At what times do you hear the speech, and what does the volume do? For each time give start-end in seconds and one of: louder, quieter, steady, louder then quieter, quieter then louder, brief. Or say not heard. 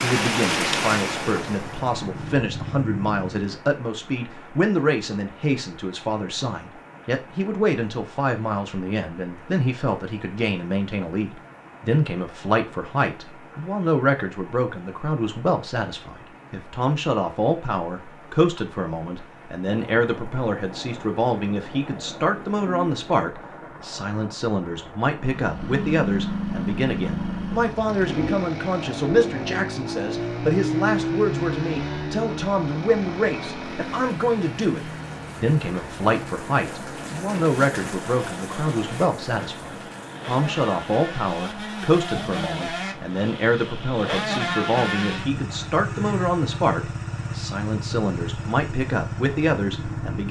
0.0-50.2 steady.